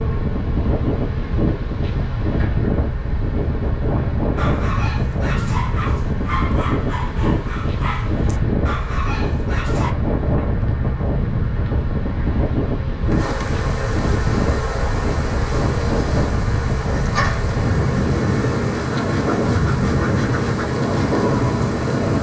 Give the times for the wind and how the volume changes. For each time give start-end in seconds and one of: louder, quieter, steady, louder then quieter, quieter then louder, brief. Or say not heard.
0.0-22.1 steady.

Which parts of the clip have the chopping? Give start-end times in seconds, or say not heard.
not heard.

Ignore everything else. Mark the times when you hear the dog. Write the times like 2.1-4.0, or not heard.
4.3-9.9.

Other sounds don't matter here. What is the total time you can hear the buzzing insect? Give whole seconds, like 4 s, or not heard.
22 s.